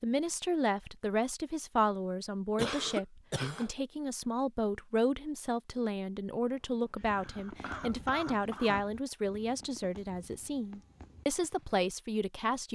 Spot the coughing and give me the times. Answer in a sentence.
You can hear the coughing from 2.5 to 3.7 s and from 7.0 to 8.9 s.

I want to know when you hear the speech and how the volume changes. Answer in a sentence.
You can hear the speech from 0.0 to 12.7 s, at a steady volume.